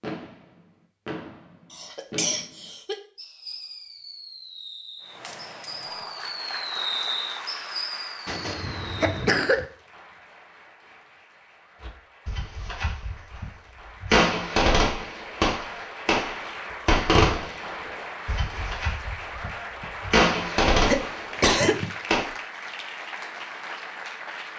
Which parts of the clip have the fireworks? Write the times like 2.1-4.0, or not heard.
0.0-9.3, 11.8-22.2.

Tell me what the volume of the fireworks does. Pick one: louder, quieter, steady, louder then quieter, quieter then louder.
louder.